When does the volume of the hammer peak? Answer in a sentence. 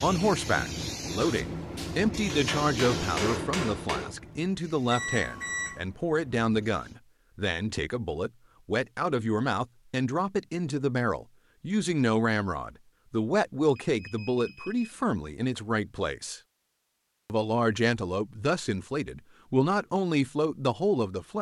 The loudest moment of the hammer is at 3 seconds.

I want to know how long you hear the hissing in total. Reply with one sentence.
You can hear the hissing for 7 seconds altogether.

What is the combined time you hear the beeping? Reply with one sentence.
You can hear the beeping for 2 seconds altogether.